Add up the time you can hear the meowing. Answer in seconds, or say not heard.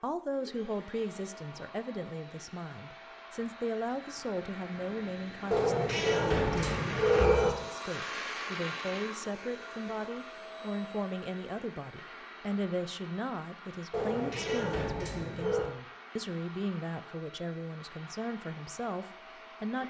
4 s.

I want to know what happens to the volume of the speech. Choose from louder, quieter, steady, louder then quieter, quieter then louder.
steady.